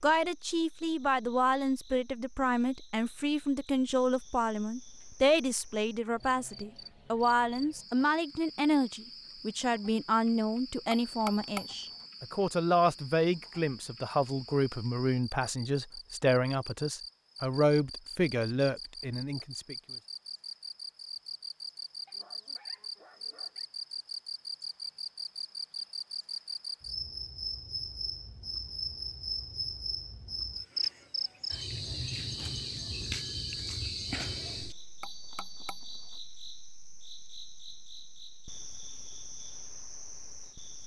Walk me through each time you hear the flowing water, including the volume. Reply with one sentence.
The flowing water can't be heard in this clip.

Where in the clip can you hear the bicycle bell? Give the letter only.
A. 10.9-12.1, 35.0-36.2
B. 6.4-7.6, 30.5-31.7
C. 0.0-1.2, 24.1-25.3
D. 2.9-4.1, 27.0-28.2
A.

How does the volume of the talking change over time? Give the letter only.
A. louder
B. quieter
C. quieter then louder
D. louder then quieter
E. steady
E.